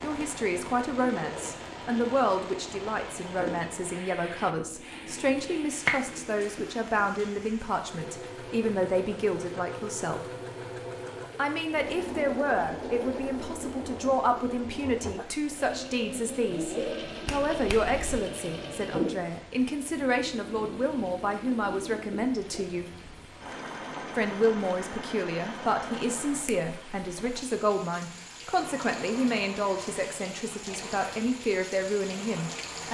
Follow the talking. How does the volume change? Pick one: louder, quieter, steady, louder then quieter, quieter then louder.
steady.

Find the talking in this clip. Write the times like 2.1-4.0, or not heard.
0.0-10.2, 11.3-22.9, 24.1-32.8.